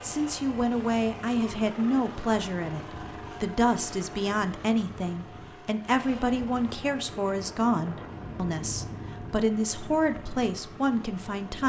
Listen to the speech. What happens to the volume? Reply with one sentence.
The loudness of the speech stays about the same.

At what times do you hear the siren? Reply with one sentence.
The siren can't be heard in this clip.